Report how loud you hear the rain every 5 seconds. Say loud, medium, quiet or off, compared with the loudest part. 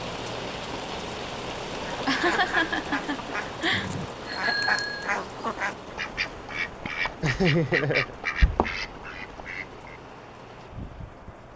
loud, medium, medium.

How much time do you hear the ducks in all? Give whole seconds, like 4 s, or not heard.
8 s.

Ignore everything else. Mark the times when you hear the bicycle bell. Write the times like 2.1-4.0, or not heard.
3.7-5.1.